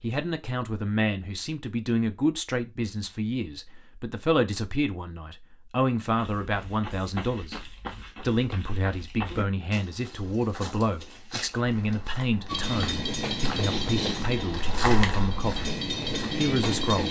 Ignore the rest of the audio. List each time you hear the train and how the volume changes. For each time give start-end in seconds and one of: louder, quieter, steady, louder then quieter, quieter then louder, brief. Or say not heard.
12.4-17.0 quieter then louder.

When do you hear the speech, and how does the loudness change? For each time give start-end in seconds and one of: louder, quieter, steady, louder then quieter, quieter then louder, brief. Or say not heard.
0.0-15.8 steady
16.4-17.0 brief.